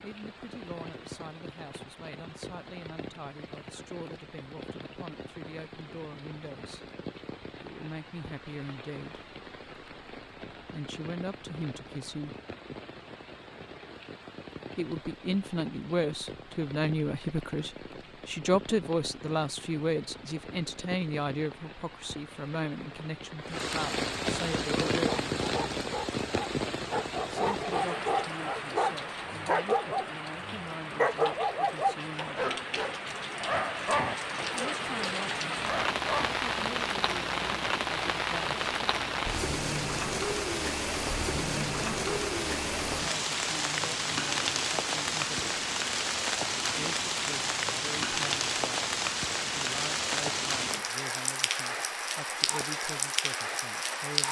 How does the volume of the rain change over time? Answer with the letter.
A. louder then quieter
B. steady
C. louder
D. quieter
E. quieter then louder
C.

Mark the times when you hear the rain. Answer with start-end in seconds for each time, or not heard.
0.0-54.2.